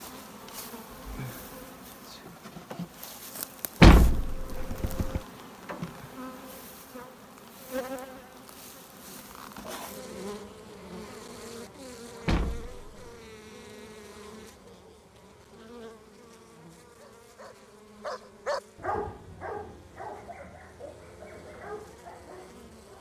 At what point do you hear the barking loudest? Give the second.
19 s.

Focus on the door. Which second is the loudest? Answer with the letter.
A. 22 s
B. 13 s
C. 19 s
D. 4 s
D.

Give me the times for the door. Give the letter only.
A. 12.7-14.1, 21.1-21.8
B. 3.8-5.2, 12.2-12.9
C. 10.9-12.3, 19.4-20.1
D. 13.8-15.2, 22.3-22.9
B.